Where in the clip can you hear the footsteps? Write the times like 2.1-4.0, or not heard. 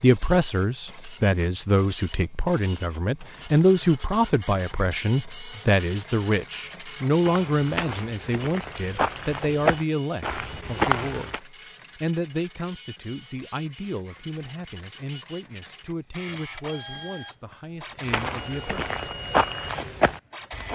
7.2-11.4, 18.1-20.7.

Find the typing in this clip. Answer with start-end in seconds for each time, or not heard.
not heard.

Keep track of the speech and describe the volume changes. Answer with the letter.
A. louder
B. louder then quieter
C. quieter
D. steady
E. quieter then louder
C.